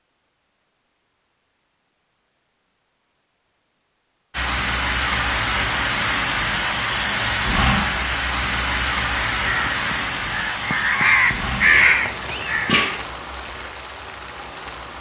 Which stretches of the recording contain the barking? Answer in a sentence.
You can't hear the barking here.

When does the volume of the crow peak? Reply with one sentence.
The volume of the crow peaks at 12 seconds.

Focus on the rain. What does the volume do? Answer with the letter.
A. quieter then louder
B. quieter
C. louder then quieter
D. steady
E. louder
B.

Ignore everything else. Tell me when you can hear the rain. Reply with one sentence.
You can hear the rain from 4.3 to 14.9 s.